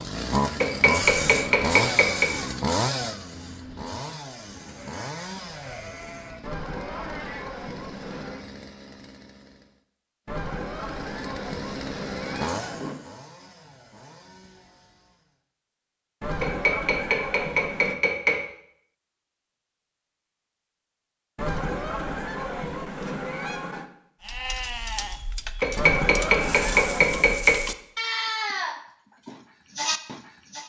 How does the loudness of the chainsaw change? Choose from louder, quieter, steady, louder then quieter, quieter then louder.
quieter then louder.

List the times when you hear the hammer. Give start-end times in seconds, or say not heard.
0.6-2.2, 16.4-18.4, 25.6-27.6.